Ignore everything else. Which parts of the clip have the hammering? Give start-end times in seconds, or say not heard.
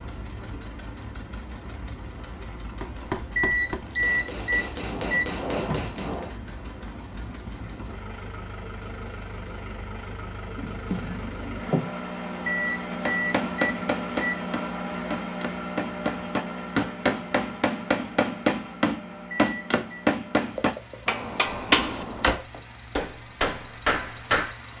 2.8-6.3, 13.1-24.6.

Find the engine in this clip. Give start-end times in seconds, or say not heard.
0.0-24.7.